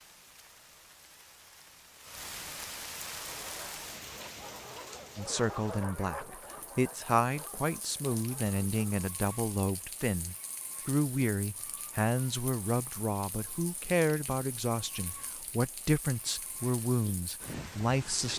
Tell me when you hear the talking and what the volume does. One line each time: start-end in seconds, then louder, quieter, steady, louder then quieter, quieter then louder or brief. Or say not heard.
5.2-18.3 steady.